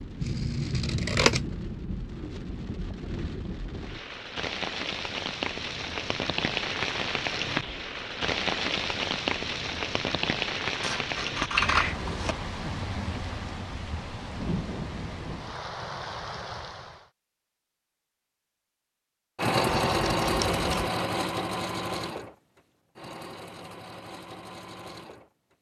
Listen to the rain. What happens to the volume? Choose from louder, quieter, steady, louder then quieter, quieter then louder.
louder then quieter.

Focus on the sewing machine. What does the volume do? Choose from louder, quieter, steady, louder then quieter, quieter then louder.
quieter.